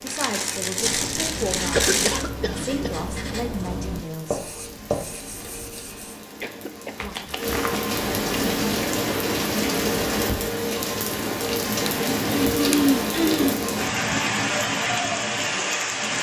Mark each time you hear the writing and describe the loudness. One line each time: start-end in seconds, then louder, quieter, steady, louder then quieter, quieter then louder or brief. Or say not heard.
0.8-6.2 steady.